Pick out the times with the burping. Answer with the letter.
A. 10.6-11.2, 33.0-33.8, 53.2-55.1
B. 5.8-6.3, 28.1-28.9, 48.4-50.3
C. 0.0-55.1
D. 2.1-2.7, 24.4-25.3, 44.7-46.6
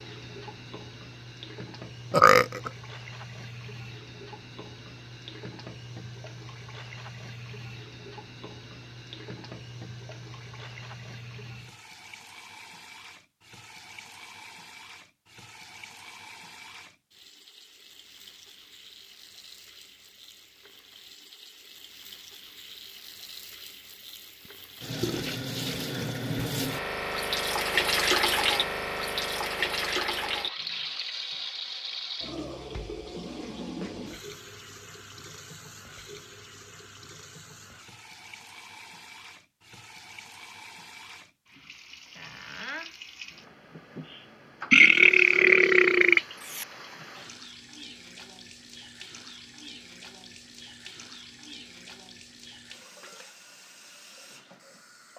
D.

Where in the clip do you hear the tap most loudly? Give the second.
28 s.